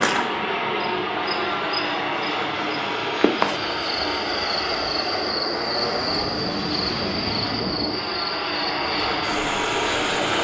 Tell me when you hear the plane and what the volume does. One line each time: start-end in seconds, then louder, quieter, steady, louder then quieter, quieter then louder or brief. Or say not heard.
0.0-10.3 steady.